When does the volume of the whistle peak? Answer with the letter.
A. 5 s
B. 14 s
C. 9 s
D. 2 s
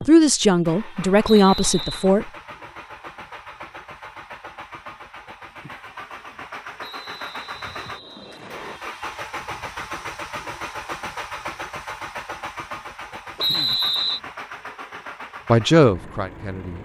B.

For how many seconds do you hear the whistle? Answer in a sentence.
You can hear the whistle for 4 seconds altogether.